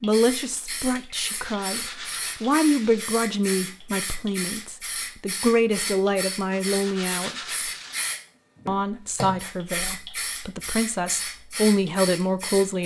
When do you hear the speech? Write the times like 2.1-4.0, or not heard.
0.0-7.5, 8.7-12.8.